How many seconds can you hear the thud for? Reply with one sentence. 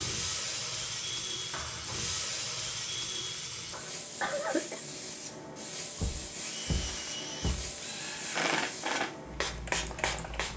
You can hear the thud for 2 seconds altogether.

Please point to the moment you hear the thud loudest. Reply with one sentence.
The loudest moment of the thud is at 7 seconds.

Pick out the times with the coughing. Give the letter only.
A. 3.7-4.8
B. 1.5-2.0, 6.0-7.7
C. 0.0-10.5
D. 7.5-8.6
A.